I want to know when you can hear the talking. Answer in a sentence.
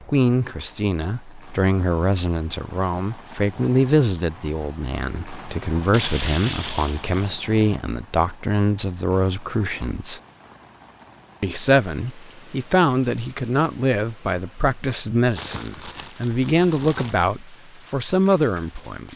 The talking can be heard from 0.1 to 10.2 s and from 11.4 to 19.1 s.